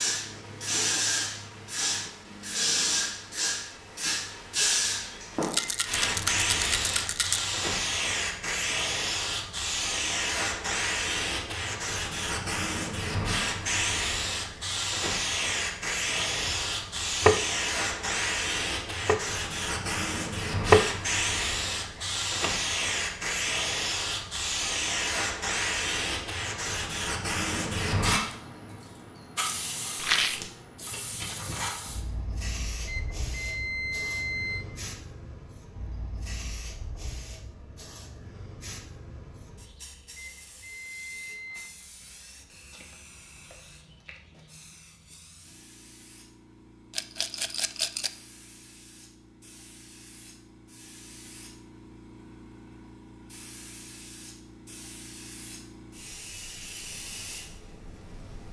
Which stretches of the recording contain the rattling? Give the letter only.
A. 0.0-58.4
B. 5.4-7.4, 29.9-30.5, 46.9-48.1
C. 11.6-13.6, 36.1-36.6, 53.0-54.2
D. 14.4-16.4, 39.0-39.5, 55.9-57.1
B.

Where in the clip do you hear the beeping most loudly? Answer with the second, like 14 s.
34 s.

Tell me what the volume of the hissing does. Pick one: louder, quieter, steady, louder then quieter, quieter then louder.
quieter.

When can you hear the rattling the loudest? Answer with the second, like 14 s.
30 s.